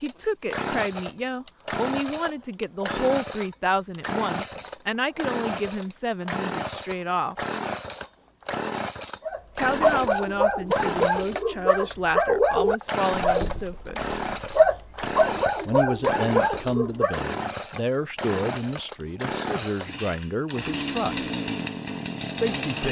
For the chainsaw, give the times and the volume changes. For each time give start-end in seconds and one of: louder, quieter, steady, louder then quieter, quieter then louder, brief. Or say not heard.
0.0-22.8 steady.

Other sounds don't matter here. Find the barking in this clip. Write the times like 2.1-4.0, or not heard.
9.2-17.2.